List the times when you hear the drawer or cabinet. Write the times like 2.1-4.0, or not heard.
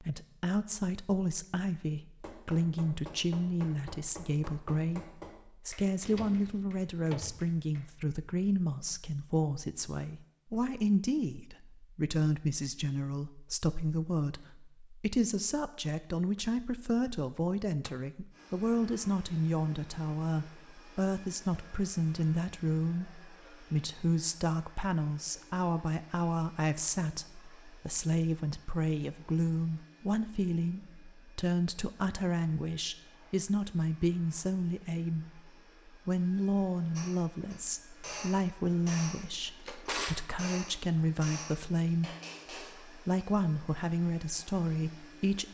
6.0-7.5, 39.3-40.2.